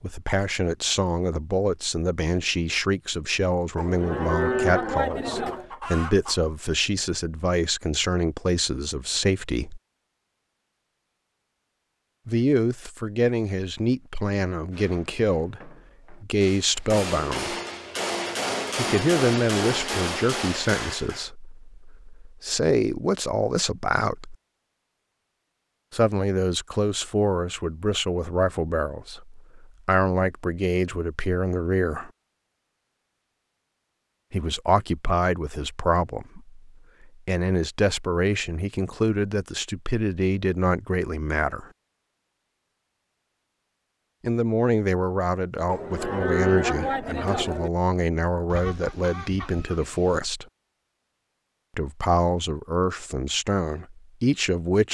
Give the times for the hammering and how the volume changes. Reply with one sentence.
You can hear the hammering from 14.7 to 21.3 s, getting louder.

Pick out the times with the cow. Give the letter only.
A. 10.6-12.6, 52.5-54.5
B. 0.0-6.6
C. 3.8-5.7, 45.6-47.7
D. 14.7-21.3
C.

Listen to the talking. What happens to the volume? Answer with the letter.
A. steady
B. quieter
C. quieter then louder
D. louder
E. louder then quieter
A.